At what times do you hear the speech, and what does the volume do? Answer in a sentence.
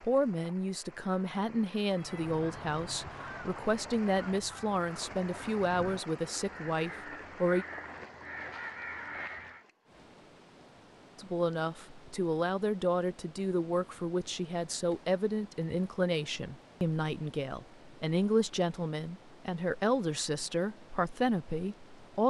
You can hear the speech from 0.0 to 7.7 s, at a steady volume; and from 11.2 to 22.2 s, at a steady volume.